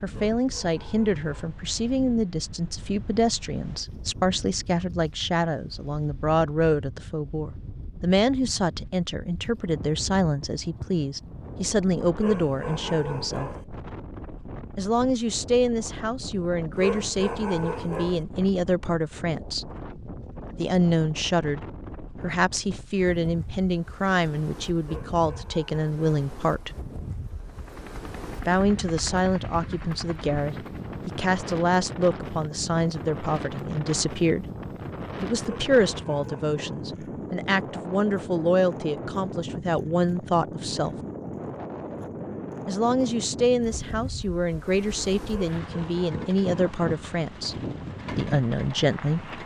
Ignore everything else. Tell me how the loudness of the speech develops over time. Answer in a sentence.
The volume of the speech stays about the same.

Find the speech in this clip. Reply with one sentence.
You can hear the speech from 0.0 to 13.5 s, from 14.8 to 19.6 s, from 20.6 to 26.7 s, from 28.4 to 34.5 s, from 35.2 to 41.0 s and from 42.6 to 49.3 s.